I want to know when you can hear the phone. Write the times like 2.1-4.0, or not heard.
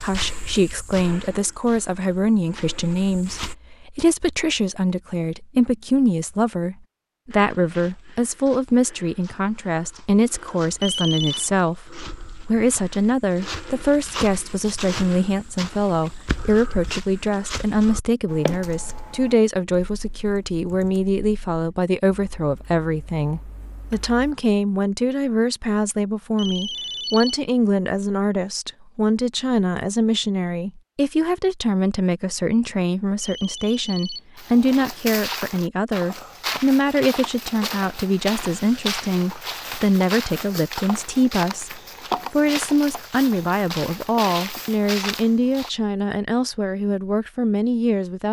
10.8-11.5, 26.4-27.4, 33.2-34.2.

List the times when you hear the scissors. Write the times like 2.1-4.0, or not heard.
not heard.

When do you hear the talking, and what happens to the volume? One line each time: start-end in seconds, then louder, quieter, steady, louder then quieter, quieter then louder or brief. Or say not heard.
0.0-48.2 steady.